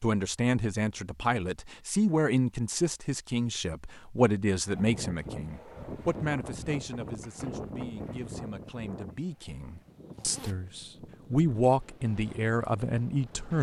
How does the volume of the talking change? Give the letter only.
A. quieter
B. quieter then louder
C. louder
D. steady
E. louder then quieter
B.